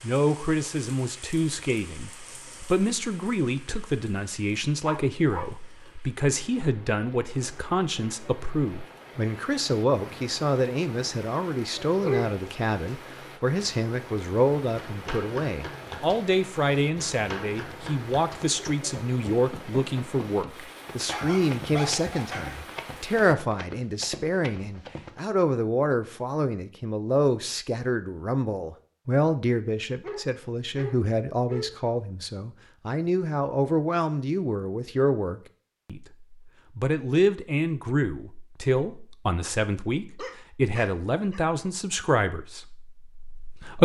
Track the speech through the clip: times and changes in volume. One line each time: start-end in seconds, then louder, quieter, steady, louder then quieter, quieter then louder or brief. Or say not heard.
0.0-43.8 steady.